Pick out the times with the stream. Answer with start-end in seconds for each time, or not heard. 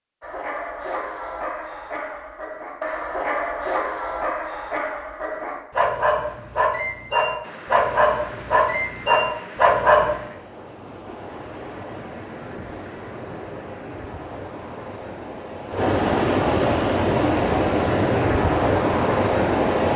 7.4-19.9.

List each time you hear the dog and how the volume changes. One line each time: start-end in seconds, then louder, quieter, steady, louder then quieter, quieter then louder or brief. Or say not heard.
0.2-10.2 louder.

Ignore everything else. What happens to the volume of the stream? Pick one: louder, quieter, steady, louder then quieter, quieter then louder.
louder.